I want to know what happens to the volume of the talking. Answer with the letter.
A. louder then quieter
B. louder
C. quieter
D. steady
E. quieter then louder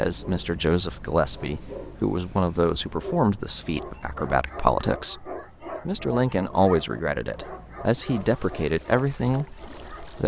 D.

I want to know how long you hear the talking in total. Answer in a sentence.
You can hear the talking for 10 seconds altogether.